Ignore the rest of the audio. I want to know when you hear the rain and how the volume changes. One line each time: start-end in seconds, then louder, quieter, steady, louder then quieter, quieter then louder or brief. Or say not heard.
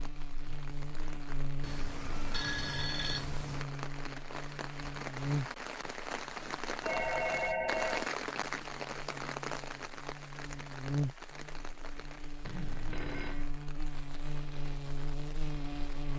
0.0-16.1 louder then quieter.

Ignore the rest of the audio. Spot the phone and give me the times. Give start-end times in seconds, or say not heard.
1.6-3.6, 6.8-8.1, 12.4-13.5.